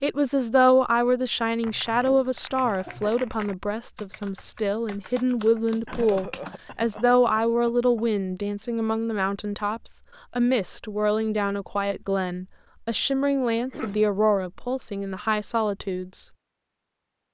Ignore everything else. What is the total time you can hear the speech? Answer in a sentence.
The speech can be heard for 16 seconds in total.